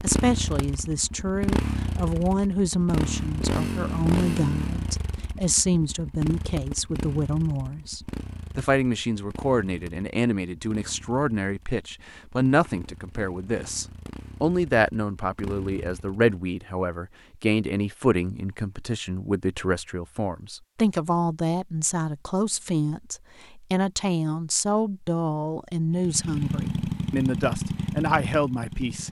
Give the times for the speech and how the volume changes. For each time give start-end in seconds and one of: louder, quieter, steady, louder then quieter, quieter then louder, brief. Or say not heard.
0.0-29.0 steady.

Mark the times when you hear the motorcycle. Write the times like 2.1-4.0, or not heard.
0.0-16.4, 25.9-29.0.